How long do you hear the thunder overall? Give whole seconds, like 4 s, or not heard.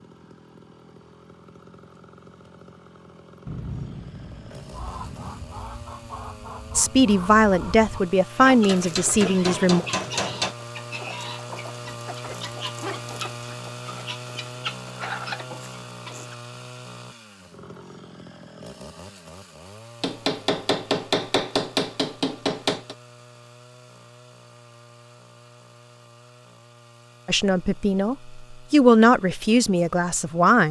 2 s.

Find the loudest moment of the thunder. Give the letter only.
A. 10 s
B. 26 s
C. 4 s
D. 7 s
C.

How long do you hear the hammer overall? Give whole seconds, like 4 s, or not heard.
5 s.